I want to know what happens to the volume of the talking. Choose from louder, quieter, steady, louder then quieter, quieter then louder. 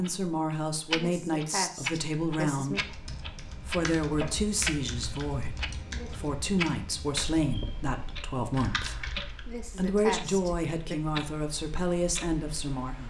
steady.